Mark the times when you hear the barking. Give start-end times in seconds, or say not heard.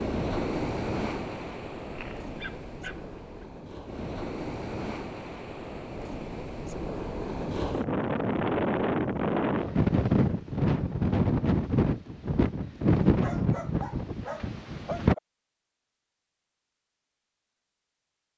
1.9-3.5, 13.2-15.2.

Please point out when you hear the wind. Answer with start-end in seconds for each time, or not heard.
0.0-15.2.